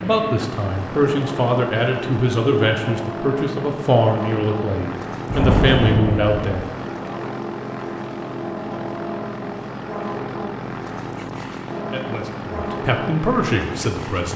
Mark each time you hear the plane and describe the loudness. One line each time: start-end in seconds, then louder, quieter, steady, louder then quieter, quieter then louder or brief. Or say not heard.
0.0-14.3 steady.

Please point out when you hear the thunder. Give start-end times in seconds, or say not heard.
5.3-6.7.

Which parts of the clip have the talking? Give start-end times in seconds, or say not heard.
0.0-6.7, 11.9-14.3.